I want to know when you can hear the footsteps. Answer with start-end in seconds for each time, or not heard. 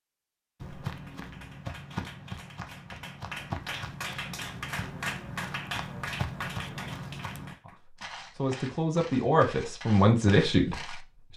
0.6-11.1.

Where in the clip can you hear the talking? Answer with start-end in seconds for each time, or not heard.
7.7-11.3.